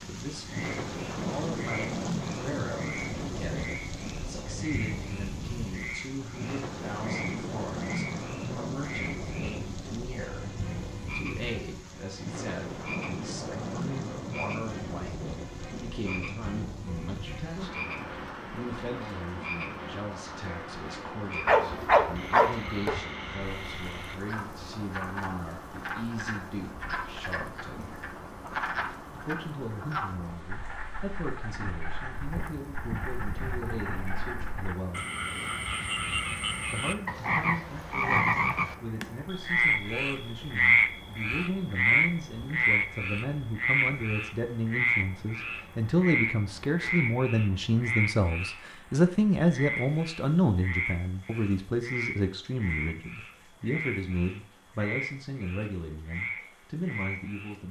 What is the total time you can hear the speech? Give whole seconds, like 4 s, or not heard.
55 s.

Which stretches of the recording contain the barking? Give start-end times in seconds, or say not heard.
21.4-23.0.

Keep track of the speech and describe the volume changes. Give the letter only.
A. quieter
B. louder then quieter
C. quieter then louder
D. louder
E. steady
D.